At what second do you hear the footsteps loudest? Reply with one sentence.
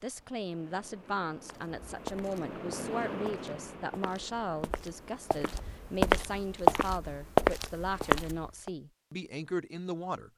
The loudest moment of the footsteps is at 7 seconds.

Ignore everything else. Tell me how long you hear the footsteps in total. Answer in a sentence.
The footsteps can be heard for 7 seconds in total.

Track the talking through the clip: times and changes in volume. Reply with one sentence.
You can hear the talking from 0.0 to 10.3 s, at a steady volume.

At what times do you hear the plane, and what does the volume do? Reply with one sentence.
You can't hear the plane here.